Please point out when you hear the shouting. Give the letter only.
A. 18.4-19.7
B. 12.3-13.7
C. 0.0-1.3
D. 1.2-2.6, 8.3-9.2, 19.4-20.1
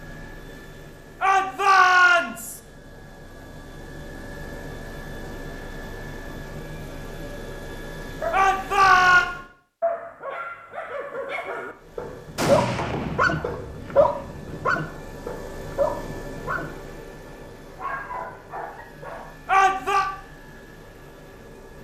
D.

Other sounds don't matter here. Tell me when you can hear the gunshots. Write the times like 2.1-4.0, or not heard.
12.3-13.7.